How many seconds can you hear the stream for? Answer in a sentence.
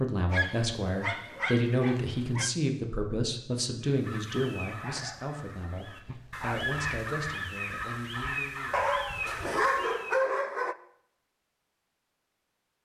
You can't hear the stream here.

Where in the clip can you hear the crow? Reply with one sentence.
You can hear the crow from 3.8 to 10.2 s.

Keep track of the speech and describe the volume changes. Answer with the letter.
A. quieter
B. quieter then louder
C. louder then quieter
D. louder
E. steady
A.